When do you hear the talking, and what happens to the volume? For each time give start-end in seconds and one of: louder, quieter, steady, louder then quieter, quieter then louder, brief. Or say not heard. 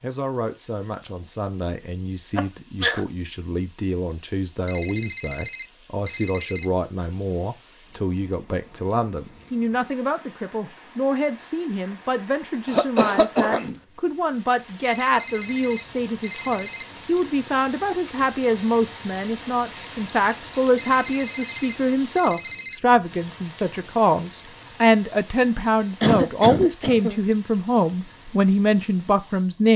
0.0-29.7 louder.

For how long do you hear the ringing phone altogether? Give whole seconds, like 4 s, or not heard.
6 s.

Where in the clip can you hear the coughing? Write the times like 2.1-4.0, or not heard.
2.4-3.0, 12.7-13.8, 26.0-27.2.